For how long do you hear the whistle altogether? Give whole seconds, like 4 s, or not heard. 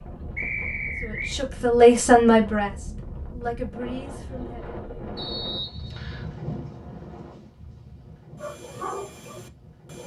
2 s.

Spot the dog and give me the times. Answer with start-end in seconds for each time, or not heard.
8.3-10.0.